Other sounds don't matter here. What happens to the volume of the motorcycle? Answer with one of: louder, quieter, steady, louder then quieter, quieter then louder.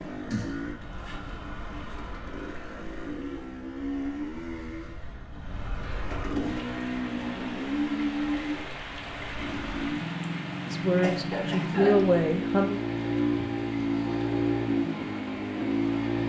louder.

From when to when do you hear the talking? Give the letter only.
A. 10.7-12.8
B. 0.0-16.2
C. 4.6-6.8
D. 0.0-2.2
A.